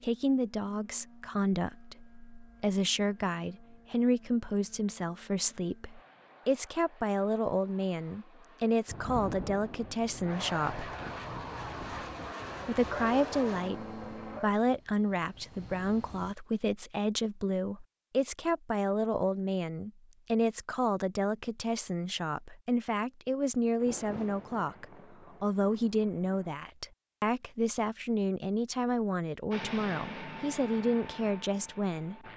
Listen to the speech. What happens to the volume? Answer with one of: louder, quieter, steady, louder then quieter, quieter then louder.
steady.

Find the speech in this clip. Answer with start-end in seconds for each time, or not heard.
0.0-10.9, 12.7-32.2.